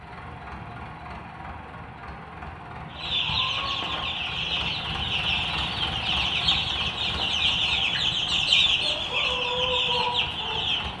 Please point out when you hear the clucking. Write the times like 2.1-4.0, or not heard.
2.9-10.9.